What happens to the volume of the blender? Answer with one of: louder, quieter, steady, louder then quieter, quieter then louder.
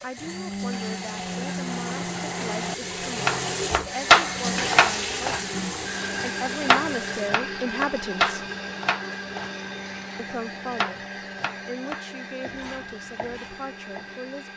quieter.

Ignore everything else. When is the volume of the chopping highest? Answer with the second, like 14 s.
4 s.